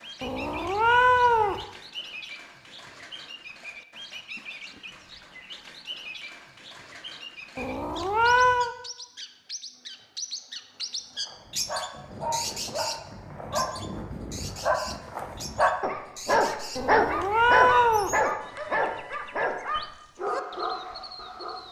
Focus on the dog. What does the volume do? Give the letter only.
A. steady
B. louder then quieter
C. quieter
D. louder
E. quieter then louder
B.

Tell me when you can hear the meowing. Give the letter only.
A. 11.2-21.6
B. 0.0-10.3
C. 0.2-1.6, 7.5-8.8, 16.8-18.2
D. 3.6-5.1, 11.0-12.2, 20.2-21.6
C.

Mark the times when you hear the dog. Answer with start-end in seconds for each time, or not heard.
11.2-21.6.